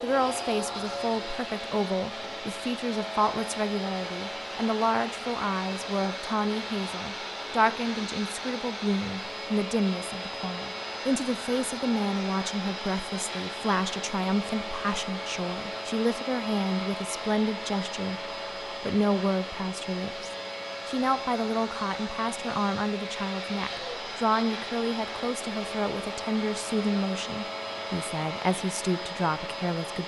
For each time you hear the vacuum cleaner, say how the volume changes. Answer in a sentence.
You can hear the vacuum cleaner from 0.0 to 30.0 s, at a steady volume.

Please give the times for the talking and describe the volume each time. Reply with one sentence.
The talking can be heard from 0.0 to 30.0 s, at a steady volume.